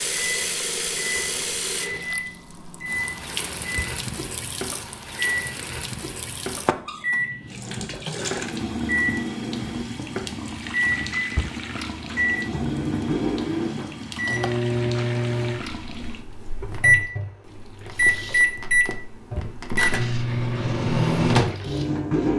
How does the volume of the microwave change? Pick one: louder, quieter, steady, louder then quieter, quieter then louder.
louder.